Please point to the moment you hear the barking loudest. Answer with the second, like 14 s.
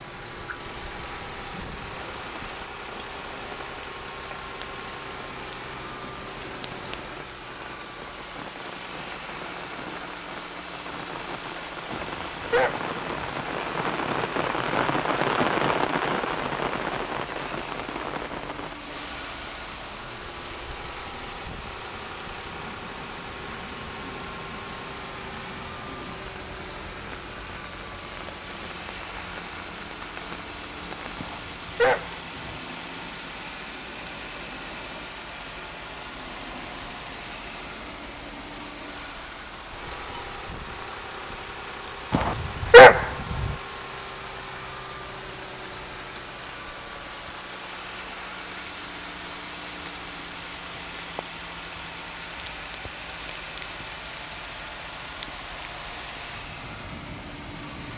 43 s.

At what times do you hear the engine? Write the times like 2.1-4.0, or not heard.
0.0-57.9.